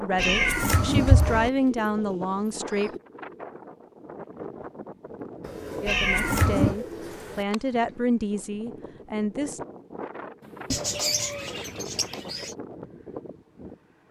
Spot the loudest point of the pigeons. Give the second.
11 s.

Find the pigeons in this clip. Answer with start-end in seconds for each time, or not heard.
1.4-3.0, 5.4-7.5, 10.7-12.6.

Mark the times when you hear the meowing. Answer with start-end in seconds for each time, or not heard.
0.1-1.5, 5.8-6.8, 10.4-12.4.